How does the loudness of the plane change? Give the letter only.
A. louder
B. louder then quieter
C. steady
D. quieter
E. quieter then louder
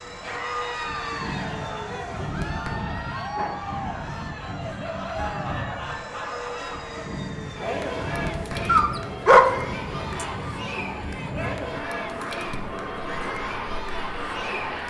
C.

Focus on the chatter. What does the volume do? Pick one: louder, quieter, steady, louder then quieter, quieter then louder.
steady.